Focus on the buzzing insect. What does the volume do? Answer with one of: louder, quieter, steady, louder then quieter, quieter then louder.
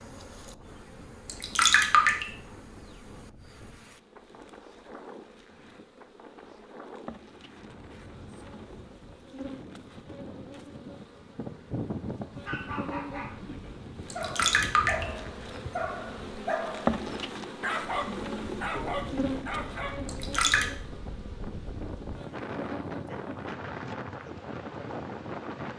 louder then quieter.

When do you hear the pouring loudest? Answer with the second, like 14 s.
2 s.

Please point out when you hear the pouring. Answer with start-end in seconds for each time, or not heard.
1.2-2.2, 14.1-15.1, 20.1-20.6.